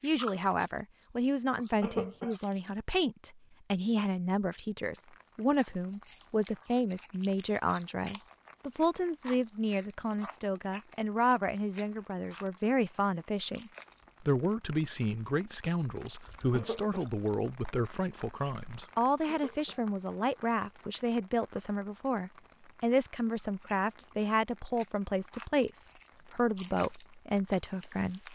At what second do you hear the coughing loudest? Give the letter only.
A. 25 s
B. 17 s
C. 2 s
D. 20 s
C.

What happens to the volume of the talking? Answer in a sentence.
The volume of the talking stays about the same.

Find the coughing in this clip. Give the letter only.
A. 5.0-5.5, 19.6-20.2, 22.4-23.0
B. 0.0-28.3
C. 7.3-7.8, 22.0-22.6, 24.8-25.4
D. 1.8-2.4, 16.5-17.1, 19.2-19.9
D.